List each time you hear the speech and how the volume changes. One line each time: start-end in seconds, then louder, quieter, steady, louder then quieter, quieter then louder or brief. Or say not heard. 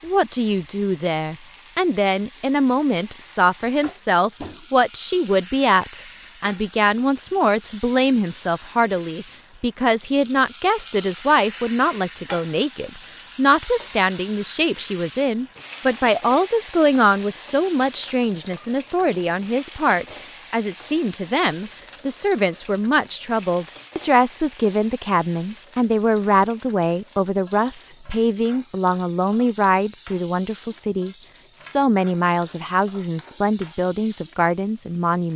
0.0-35.3 steady.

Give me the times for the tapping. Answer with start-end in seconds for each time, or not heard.
3.8-4.7.